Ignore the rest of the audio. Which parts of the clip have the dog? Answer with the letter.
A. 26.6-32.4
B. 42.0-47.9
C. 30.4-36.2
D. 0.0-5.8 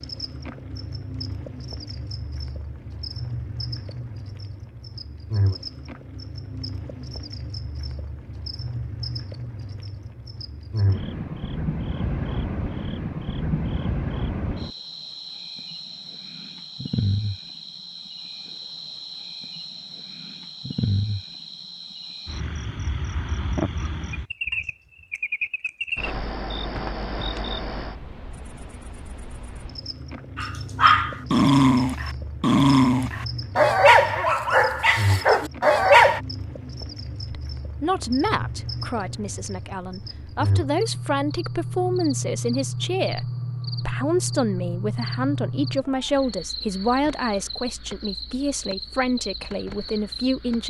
C.